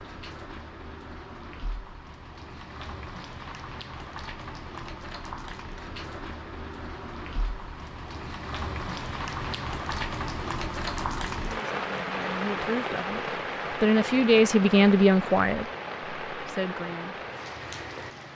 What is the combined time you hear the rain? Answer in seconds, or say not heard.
18 s.